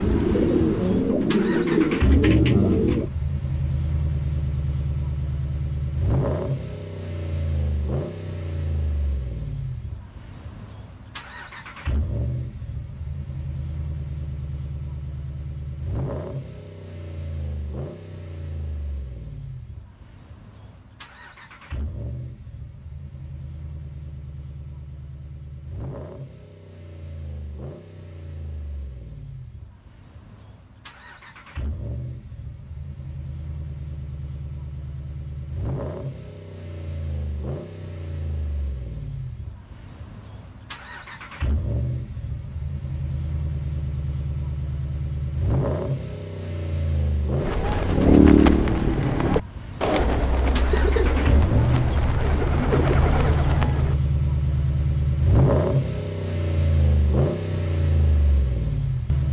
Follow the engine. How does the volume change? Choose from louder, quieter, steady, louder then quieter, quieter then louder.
quieter then louder.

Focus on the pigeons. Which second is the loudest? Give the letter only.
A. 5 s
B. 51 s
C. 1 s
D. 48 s
D.